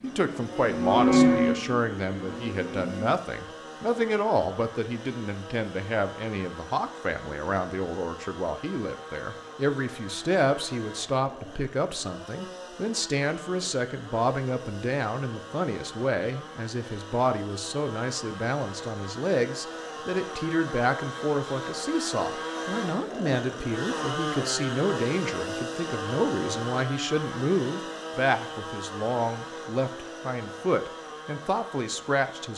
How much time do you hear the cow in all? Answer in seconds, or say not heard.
3 s.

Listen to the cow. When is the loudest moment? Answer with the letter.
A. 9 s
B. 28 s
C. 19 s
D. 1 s
D.